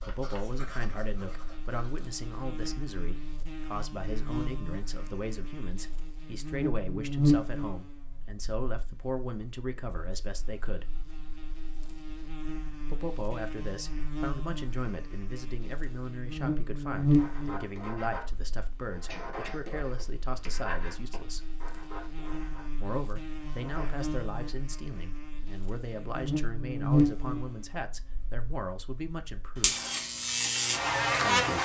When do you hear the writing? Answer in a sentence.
You can hear the writing from 0.0 to 2.1 s and from 17.1 to 24.0 s.